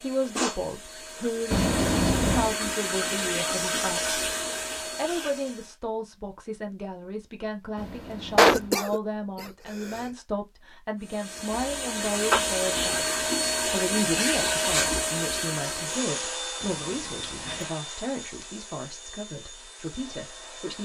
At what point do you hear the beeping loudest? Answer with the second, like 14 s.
2 s.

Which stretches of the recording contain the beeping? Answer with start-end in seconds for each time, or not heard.
1.5-2.5, 7.8-8.8, 16.6-17.7.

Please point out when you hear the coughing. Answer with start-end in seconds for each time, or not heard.
8.3-10.1.